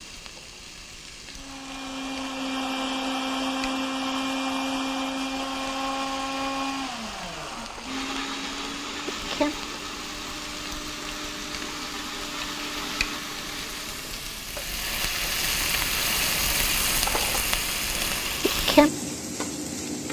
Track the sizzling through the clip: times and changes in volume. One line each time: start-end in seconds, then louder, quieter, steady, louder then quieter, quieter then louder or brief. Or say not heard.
0.0-20.0 louder.